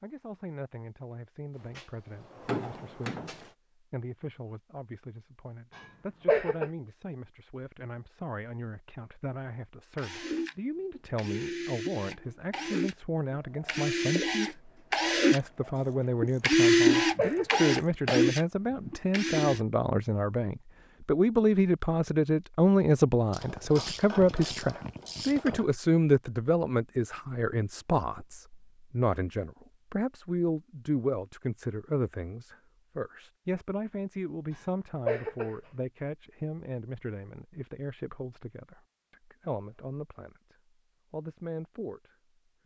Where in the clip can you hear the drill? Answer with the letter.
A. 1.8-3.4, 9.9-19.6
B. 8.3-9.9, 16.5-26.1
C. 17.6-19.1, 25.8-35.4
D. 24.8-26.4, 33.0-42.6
A.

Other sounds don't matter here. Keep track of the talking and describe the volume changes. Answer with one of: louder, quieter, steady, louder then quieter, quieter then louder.
louder then quieter.